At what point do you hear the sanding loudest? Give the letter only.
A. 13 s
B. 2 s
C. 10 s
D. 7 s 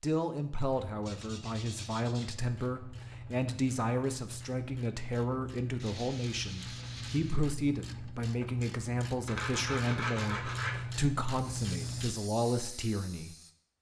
C.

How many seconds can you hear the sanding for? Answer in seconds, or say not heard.
5 s.